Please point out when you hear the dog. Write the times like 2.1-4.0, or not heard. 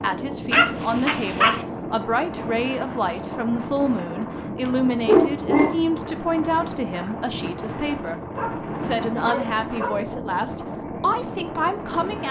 0.5-1.6, 5.0-5.8, 8.3-10.1.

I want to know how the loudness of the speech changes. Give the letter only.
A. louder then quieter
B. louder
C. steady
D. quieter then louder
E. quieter
C.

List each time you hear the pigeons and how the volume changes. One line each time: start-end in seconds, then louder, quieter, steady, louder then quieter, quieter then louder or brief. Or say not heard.
not heard.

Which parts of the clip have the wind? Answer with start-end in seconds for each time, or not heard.
0.0-12.2.